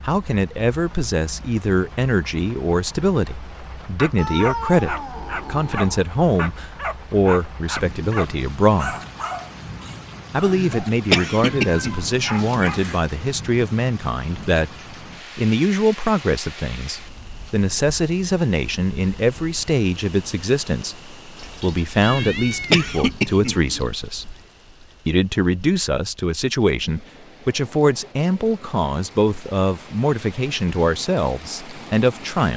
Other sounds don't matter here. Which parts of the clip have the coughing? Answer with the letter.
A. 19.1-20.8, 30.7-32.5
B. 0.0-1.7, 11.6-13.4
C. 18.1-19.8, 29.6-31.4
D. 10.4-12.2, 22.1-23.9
D.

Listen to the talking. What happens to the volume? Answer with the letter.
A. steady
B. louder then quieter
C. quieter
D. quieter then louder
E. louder
A.